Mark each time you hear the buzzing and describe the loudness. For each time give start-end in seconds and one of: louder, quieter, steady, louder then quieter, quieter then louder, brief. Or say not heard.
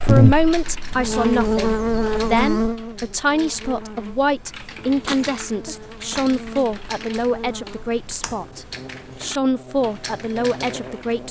0.0-11.2 quieter.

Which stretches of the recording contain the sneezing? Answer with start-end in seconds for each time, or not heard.
5.0-5.8.